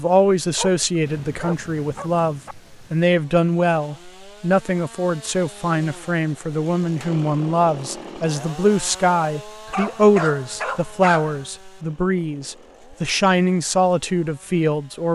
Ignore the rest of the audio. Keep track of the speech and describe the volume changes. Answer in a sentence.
The loudness of the speech stays about the same.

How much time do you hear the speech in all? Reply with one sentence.
You can hear the speech for 15 seconds altogether.